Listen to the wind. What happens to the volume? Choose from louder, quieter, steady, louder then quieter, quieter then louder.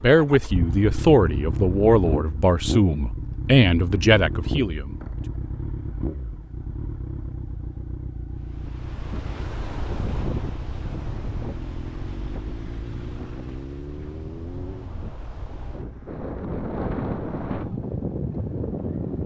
quieter then louder.